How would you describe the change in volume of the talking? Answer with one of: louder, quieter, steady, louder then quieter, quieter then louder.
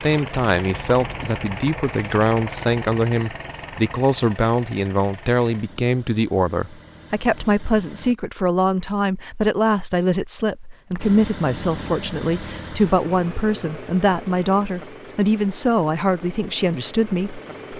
steady.